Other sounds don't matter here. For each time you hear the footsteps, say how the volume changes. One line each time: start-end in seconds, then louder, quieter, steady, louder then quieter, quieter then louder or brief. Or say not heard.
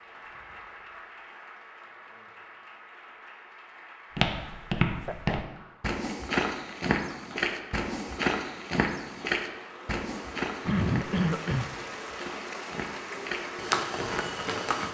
4.2-14.8 quieter then louder.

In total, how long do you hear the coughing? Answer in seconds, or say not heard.
2 s.